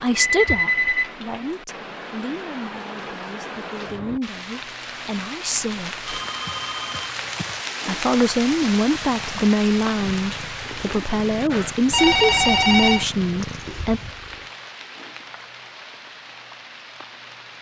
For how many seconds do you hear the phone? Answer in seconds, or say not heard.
4 s.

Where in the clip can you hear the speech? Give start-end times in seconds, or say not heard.
0.0-6.0, 7.8-14.0.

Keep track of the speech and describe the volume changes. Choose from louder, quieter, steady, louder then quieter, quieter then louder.
quieter then louder.